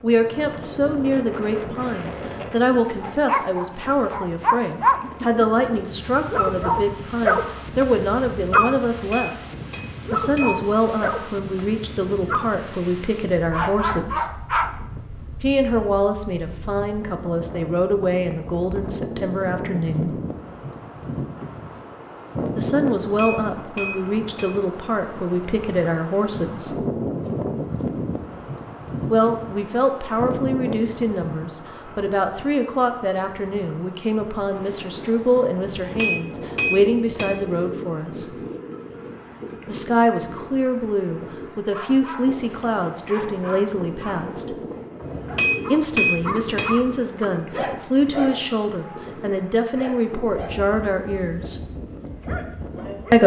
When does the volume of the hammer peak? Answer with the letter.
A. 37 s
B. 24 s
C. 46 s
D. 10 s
C.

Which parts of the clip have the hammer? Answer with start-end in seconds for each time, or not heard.
8.3-10.6, 23.1-24.8, 35.6-37.5, 45.0-47.0.